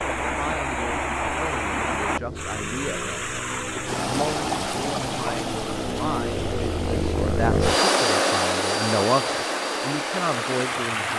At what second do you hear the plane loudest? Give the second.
8 s.